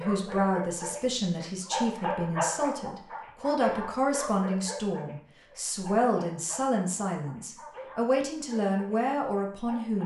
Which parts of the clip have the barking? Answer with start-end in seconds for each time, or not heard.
0.0-10.0.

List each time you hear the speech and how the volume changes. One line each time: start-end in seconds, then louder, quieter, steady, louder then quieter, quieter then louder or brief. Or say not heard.
0.0-10.0 steady.